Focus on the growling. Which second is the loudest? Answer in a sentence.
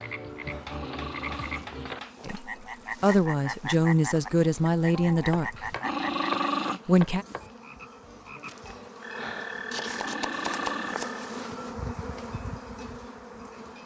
The volume of the growling peaks at 6 seconds.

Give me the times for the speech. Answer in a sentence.
You can hear the speech from 2.2 to 5.7 s and from 6.8 to 7.2 s.